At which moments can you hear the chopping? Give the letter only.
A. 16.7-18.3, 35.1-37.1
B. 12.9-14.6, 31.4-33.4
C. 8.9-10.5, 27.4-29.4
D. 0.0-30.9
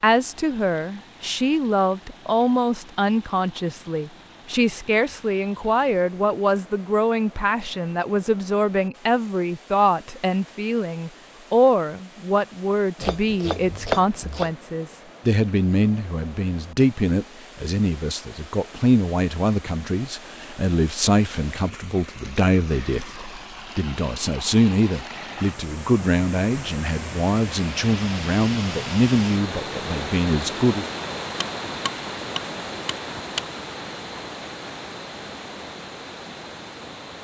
B.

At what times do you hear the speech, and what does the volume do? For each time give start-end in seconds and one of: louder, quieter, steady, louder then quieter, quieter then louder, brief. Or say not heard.
0.0-30.9 steady.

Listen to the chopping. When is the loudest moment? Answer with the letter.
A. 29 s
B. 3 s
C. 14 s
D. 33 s
C.